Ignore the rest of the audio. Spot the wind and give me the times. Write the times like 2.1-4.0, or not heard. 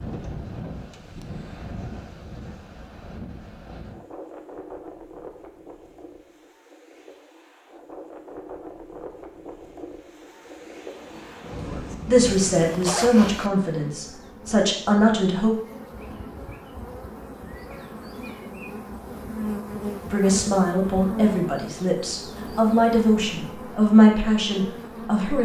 0.0-12.9.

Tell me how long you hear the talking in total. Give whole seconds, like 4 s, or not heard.
9 s.